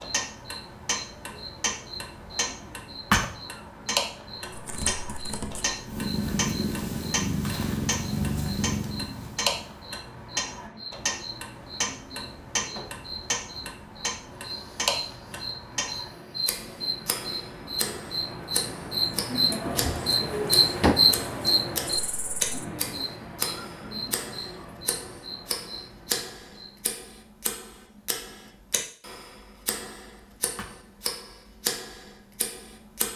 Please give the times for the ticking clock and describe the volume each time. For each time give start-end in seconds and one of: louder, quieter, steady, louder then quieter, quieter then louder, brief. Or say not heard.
0.0-33.1 steady.